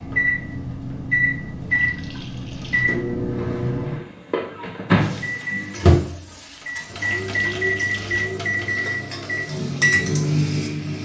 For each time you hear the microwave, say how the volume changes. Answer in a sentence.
The microwave can be heard from 0.0 to 11.0 s, at a steady volume.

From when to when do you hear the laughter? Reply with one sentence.
You can't hear the laughter here.